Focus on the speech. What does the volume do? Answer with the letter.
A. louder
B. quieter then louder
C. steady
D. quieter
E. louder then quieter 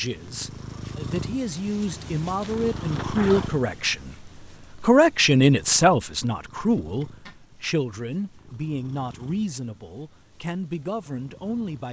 E.